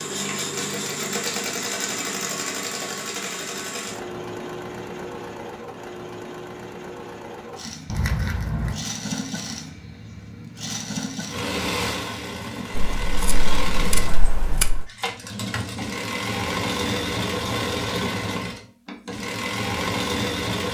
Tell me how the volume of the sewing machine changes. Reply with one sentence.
The volume of the sewing machine goes down, then up.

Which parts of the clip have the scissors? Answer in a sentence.
You can hear the scissors from 7.8 to 8.8 s and from 12.8 to 14.9 s.